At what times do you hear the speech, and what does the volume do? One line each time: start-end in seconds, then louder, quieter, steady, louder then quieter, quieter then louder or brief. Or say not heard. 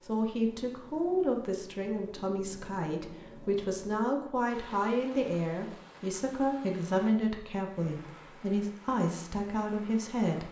0.0-10.4 steady.